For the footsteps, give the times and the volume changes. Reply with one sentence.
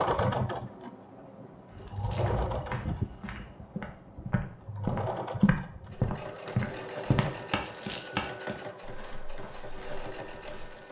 The footsteps can be heard from 1.6 to 10.8 s, getting louder then quieter.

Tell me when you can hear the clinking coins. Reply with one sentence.
The clinking coins can be heard from 1.8 to 2.5 s and from 7.5 to 8.2 s.